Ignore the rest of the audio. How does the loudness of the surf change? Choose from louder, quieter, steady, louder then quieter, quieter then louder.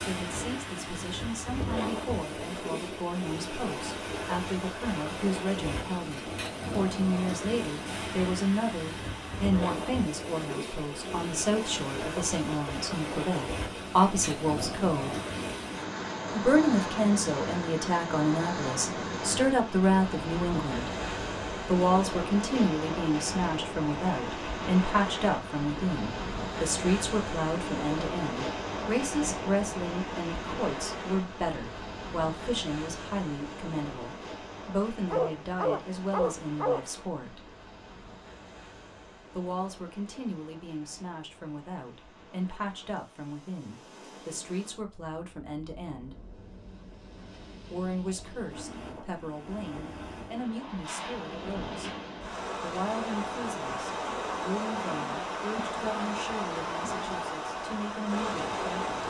quieter then louder.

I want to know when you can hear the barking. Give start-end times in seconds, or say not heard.
35.1-36.9.